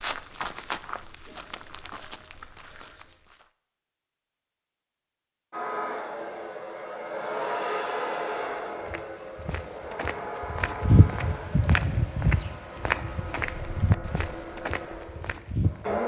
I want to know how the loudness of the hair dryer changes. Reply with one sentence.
The volume of the hair dryer goes down.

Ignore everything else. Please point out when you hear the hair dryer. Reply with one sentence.
The hair dryer can be heard from 5.5 to 16.0 s.